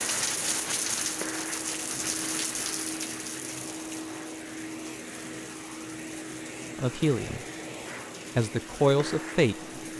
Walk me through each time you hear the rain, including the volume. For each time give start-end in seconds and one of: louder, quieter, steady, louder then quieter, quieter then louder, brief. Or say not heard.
0.0-9.9 quieter.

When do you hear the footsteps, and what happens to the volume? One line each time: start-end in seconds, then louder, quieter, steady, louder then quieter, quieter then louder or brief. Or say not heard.
not heard.